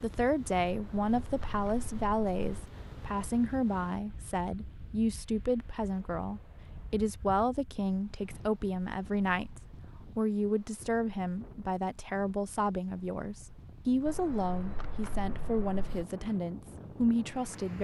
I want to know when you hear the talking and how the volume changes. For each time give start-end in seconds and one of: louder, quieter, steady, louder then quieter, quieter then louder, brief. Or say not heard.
0.0-17.7 steady.